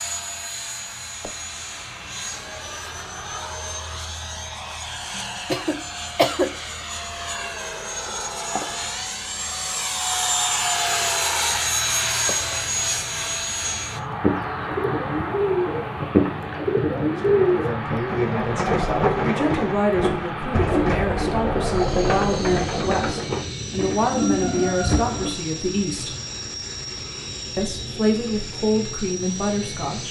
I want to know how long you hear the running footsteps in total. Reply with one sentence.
You can't hear the running footsteps here.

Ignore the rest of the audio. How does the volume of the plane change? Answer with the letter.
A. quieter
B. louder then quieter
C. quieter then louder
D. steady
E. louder
B.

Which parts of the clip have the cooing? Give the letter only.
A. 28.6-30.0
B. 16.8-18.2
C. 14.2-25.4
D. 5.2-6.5
C.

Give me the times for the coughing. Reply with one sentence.
You can hear the coughing from 5.2 to 6.5 s.